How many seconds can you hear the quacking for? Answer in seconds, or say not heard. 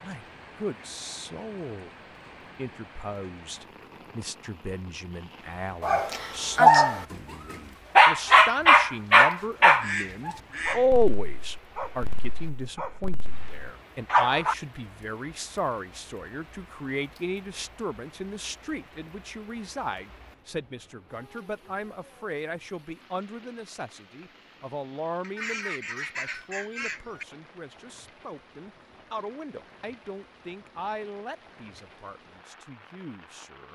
3 s.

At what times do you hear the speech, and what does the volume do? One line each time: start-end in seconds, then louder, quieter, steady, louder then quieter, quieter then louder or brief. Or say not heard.
0.0-1.9 brief
2.5-33.7 louder then quieter.